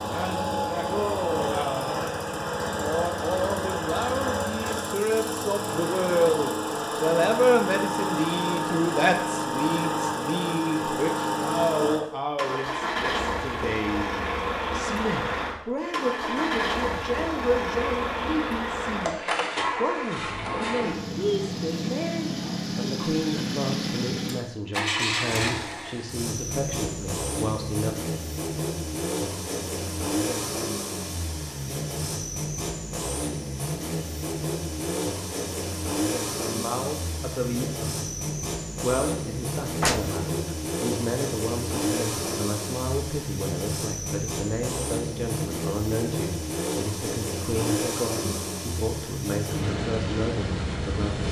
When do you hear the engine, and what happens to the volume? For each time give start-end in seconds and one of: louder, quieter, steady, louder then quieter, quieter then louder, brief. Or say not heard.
0.0-51.2 steady.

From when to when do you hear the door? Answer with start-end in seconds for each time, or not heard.
39.8-40.2.